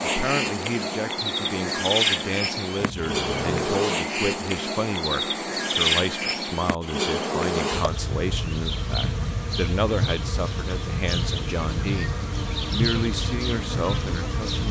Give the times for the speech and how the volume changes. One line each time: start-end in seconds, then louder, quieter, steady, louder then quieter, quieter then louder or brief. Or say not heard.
0.0-14.6 steady.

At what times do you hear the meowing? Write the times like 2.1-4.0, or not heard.
2.8-3.7.